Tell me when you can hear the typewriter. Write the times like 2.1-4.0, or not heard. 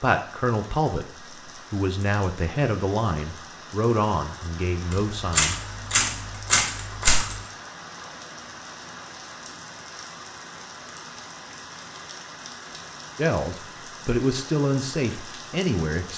4.9-7.5.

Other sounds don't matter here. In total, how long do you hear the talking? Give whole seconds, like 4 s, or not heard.
8 s.